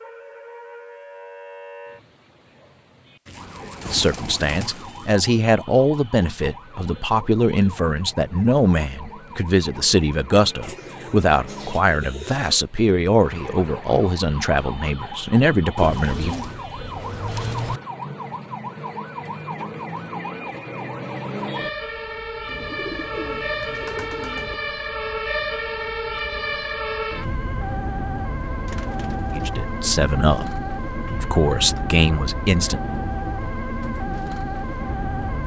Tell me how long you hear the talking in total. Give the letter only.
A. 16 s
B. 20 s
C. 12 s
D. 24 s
A.